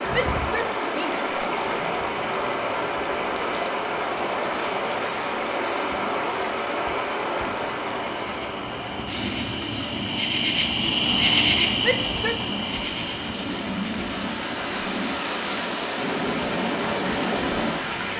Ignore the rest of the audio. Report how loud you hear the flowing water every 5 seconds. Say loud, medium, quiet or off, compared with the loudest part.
loud, loud, medium, loud.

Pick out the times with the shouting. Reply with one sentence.
The shouting can be heard from 0.1 to 1.2 s and from 11.8 to 12.4 s.